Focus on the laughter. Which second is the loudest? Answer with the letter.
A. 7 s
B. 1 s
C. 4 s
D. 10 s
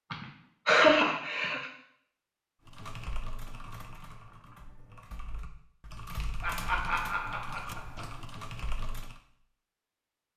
B.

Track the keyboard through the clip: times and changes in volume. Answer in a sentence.
You can hear the keyboard from 2.6 to 9.2 s, getting quieter then louder.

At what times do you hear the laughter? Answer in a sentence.
You can hear the laughter from 0.1 to 1.6 s and from 6.4 to 8.1 s.